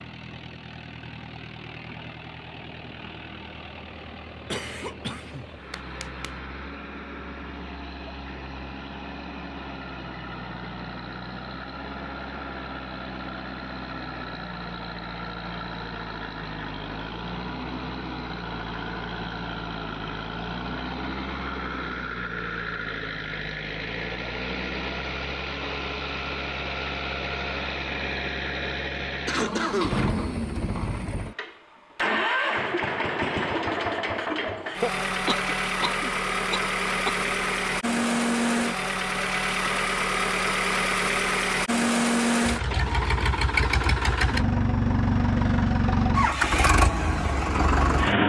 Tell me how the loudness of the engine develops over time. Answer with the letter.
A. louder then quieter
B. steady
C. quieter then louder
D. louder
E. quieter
D.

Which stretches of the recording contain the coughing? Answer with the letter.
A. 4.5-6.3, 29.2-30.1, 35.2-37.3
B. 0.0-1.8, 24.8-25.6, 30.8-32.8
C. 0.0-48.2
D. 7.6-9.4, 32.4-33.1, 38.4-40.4
A.